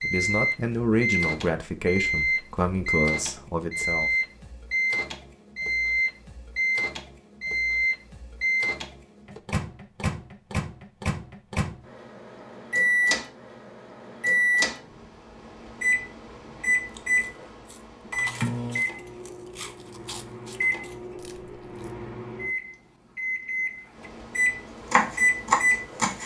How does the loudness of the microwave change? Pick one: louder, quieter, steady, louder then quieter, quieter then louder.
steady.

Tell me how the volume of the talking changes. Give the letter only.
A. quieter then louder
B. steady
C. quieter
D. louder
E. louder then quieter
C.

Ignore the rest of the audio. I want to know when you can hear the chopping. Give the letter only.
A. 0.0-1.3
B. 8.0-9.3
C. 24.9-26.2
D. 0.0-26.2
C.